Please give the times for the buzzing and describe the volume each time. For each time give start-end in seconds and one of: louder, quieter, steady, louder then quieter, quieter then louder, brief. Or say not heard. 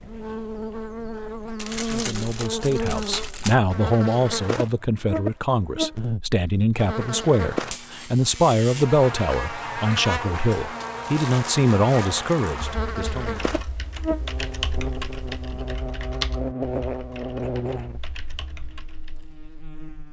0.0-20.0 steady.